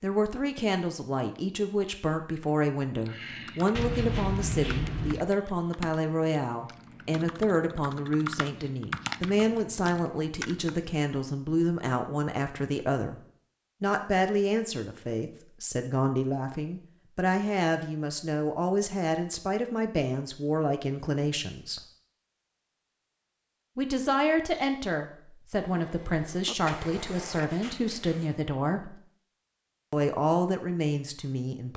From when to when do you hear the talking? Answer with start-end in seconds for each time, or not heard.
0.0-13.2, 13.8-21.8, 23.8-29.0, 29.9-31.7.